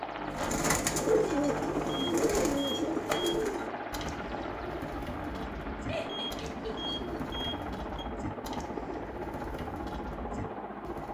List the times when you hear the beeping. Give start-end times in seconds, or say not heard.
1.9-3.4, 6.0-8.1.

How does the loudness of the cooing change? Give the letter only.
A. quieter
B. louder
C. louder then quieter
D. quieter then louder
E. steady
A.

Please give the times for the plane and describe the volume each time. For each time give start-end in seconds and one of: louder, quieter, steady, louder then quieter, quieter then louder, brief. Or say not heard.
0.0-11.0 steady.